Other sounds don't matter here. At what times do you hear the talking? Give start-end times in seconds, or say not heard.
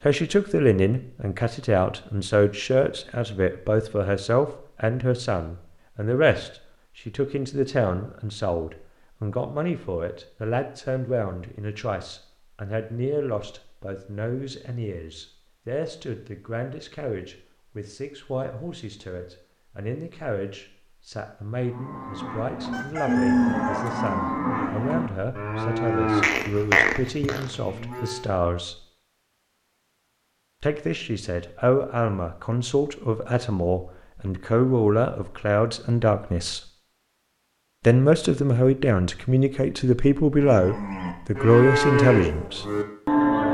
0.1-28.8, 30.6-36.6, 37.8-42.6.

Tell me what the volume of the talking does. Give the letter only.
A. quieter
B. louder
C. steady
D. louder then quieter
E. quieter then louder
E.